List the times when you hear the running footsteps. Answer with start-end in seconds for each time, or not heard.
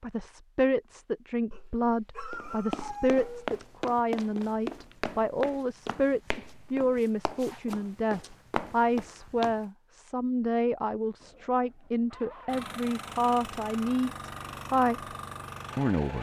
2.3-9.7.